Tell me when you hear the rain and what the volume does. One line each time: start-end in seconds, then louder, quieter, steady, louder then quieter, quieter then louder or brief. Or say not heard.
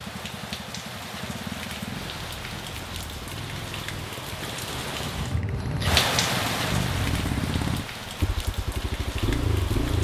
0.0-9.9 louder then quieter.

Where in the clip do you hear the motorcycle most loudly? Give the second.
7 s.